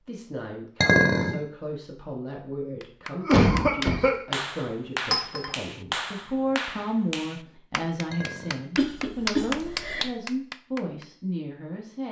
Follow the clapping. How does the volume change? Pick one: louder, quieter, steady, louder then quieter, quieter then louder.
quieter then louder.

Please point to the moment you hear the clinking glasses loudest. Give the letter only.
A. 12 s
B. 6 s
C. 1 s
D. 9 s
C.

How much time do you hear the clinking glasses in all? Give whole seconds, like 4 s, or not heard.
2 s.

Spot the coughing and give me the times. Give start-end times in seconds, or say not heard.
3.2-4.3, 8.8-10.1.